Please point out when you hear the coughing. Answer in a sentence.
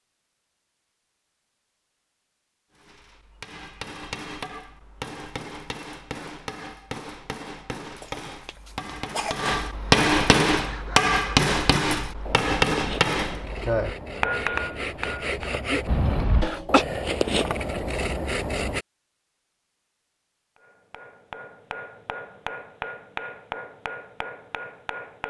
You can hear the coughing from 8.0 to 9.5 s and from 15.8 to 16.9 s.